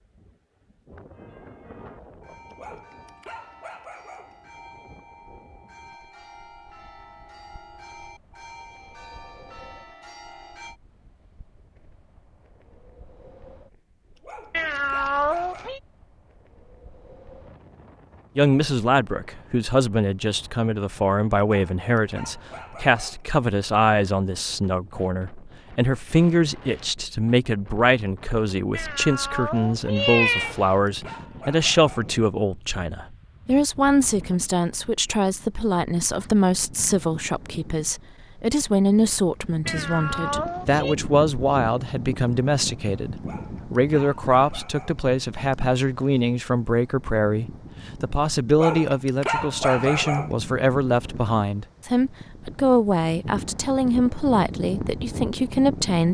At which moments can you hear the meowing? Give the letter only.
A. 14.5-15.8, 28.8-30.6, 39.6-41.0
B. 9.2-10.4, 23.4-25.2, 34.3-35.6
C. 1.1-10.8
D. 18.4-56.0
A.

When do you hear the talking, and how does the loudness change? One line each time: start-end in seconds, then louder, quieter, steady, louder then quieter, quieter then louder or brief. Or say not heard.
18.4-56.0 steady.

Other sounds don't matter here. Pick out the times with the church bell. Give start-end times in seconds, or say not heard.
1.1-10.8.